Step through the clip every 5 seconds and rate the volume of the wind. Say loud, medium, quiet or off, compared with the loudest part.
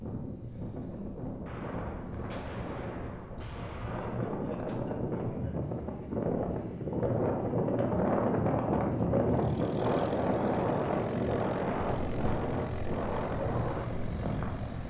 medium, loud, loud.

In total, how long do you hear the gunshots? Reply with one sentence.
The gunshots can be heard for 3 seconds in total.